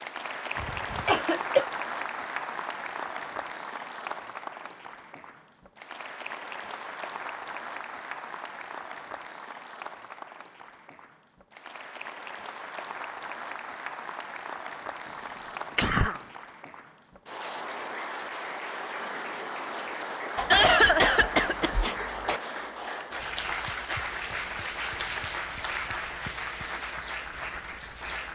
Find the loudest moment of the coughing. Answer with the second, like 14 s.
21 s.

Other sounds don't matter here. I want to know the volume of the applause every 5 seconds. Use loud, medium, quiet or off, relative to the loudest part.
loud, medium, medium, loud, loud, loud.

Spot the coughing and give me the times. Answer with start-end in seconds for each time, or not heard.
0.6-1.6, 15.8-16.2, 20.4-22.4.